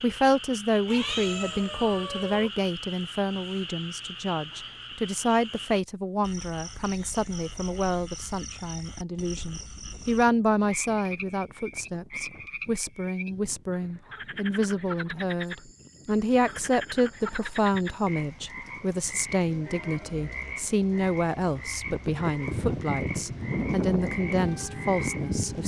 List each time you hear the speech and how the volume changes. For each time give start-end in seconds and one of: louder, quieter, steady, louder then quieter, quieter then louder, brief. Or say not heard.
0.0-25.6 steady.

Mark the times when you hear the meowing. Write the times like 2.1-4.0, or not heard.
0.8-2.5.